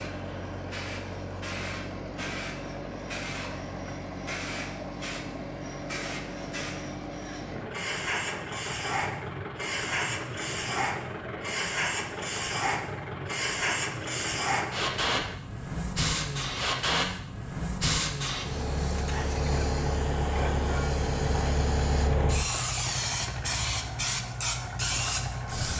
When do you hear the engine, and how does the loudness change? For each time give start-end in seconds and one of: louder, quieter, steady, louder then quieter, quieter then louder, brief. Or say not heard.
0.0-25.7 steady.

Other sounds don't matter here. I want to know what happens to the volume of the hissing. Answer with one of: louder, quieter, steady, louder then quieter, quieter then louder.
louder.